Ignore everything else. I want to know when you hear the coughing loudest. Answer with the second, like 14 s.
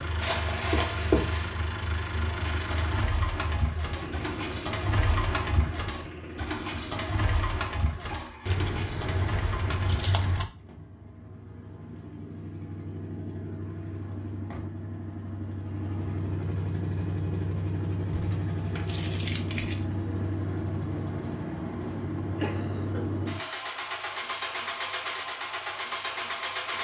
1 s.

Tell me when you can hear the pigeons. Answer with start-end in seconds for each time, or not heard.
2.4-10.4.